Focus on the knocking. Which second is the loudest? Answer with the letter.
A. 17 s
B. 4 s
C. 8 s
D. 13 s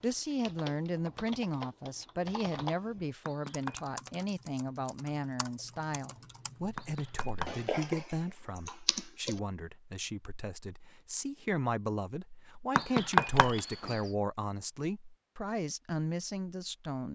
D.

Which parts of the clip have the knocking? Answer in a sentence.
The knocking can be heard from 3.2 to 3.8 s, from 6.8 to 7.7 s and from 12.8 to 14.0 s.